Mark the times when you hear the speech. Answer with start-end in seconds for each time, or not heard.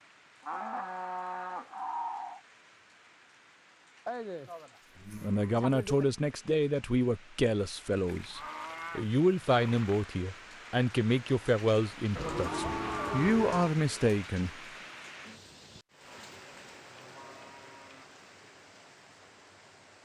5.2-14.6.